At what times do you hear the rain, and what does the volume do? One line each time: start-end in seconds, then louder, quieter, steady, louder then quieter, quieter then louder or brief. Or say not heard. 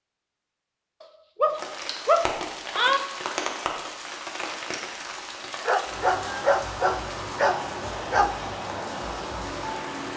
1.5-10.1 steady.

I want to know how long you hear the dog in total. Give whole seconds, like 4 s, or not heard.
5 s.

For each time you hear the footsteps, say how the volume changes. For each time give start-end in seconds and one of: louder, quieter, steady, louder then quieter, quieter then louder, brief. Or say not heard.
not heard.